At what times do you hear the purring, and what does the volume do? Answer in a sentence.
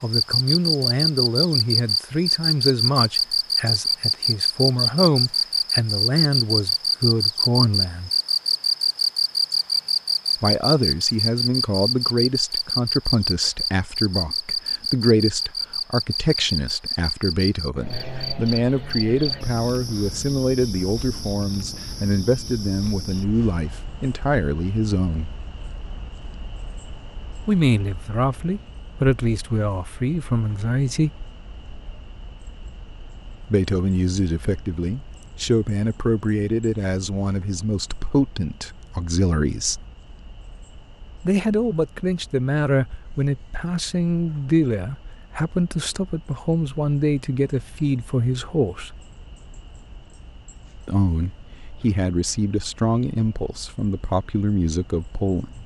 You can't hear the purring here.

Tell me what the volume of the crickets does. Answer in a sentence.
The loudness of the crickets goes down.